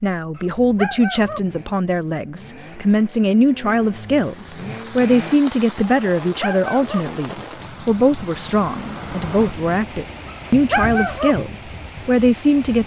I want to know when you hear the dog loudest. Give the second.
11 s.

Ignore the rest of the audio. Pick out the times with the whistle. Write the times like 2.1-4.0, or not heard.
not heard.